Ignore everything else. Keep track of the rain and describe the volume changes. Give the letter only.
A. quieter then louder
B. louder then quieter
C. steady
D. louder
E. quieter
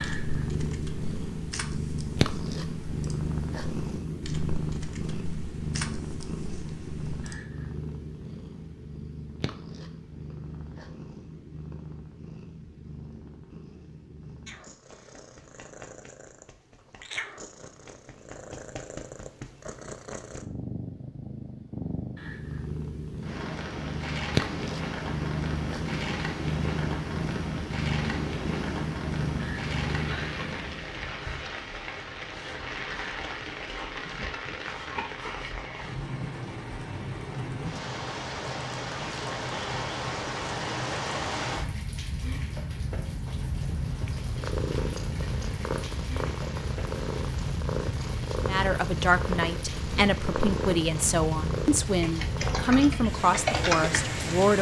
C.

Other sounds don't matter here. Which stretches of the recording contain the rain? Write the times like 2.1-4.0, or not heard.
23.2-54.5.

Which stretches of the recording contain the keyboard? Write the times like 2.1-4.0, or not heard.
0.0-7.3, 52.0-54.1.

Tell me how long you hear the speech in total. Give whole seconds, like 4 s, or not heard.
6 s.